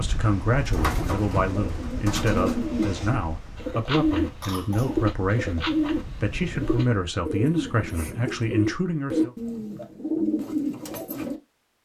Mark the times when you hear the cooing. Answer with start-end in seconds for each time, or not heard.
0.5-11.4.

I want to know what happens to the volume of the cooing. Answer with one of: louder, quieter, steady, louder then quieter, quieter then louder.
steady.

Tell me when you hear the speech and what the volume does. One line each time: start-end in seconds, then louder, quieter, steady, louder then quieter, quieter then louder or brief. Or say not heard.
0.0-9.3 steady.